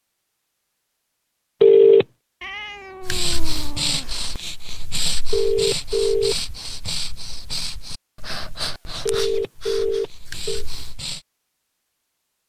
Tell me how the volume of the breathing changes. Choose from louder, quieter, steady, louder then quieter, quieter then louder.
quieter.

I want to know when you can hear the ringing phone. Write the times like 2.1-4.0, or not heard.
1.6-2.0, 5.3-6.3, 9.1-10.7.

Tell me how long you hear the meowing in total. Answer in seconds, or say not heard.
2 s.